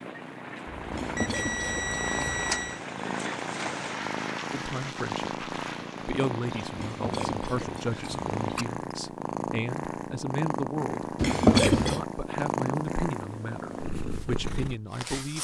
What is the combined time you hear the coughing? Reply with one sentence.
You can hear the coughing for 4 seconds altogether.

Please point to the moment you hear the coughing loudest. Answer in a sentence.
The volume of the coughing peaks at 12 seconds.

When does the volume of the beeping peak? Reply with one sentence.
The loudest moment of the beeping is at 2 seconds.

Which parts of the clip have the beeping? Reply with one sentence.
The beeping can be heard from 0.7 to 2.8 s.